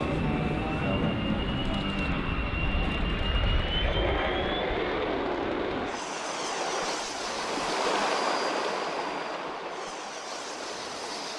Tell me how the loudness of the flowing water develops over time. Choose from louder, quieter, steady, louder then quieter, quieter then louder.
louder then quieter.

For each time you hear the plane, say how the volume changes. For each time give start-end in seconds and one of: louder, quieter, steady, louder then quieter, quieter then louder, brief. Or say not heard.
0.0-11.3 quieter.